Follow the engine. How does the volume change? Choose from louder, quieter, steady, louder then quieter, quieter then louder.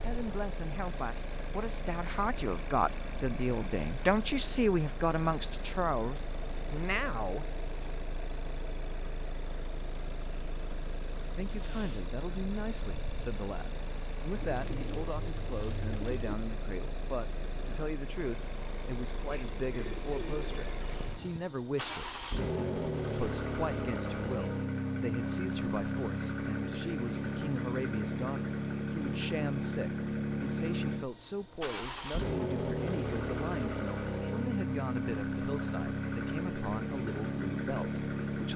louder.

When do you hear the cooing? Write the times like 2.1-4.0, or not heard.
14.3-16.4, 19.7-21.5.